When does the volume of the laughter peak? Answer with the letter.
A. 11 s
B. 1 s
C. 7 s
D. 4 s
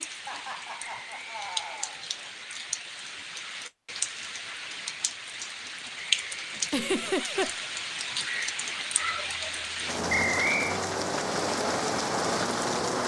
C.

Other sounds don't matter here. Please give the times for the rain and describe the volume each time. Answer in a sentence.
The rain can be heard from 0.0 to 13.0 s, getting louder.